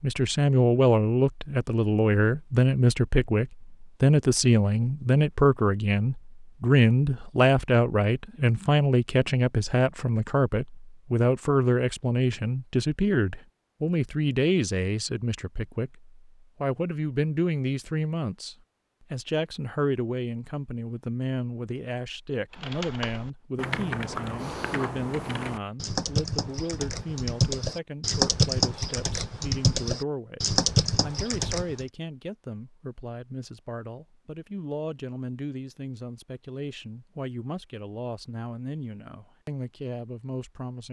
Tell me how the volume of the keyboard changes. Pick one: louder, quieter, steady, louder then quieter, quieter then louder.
louder.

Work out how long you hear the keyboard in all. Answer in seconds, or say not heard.
9 s.